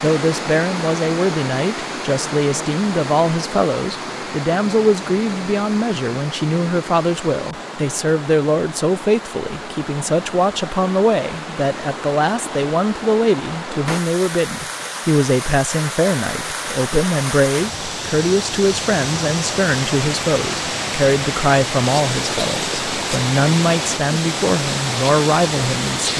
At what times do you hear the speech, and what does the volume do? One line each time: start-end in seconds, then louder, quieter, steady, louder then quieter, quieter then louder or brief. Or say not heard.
0.0-26.1 steady.